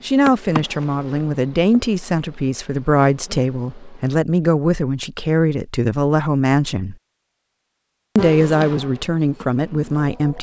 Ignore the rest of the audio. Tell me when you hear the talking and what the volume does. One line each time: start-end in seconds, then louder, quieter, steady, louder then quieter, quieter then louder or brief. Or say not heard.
0.0-7.0 steady
8.2-10.3 brief.